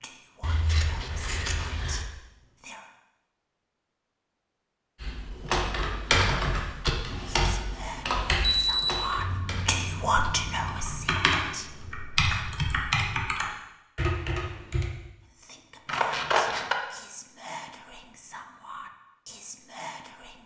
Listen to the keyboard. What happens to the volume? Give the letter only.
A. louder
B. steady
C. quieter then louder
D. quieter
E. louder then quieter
C.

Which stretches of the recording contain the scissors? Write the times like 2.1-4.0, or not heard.
0.4-2.0, 9.2-11.2, 15.8-16.8.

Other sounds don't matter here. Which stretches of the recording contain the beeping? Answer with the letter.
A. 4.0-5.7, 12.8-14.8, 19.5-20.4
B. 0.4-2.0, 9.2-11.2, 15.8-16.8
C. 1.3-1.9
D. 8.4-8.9
D.